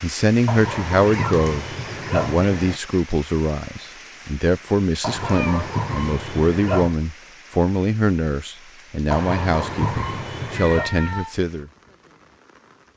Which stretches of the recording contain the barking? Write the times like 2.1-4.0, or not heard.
0.5-2.8, 5.0-7.0, 9.1-10.9.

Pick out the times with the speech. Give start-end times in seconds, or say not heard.
0.0-11.7.